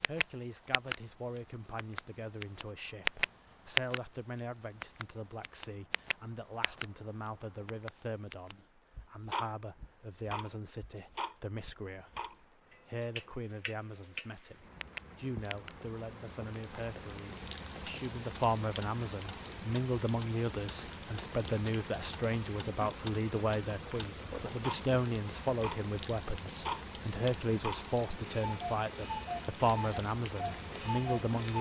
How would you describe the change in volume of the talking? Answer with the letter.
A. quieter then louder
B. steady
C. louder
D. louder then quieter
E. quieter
C.